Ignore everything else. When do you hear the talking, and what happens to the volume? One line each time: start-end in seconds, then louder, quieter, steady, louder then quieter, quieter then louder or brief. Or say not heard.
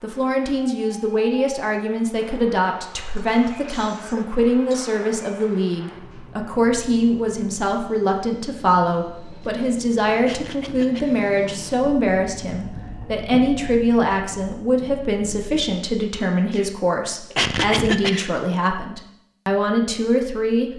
0.0-20.7 steady.